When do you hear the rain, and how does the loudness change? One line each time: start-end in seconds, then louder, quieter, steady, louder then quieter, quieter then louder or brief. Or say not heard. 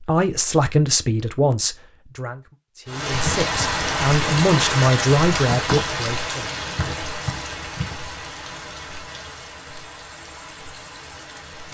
2.9-11.7 quieter.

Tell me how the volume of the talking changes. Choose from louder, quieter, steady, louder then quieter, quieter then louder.
quieter then louder.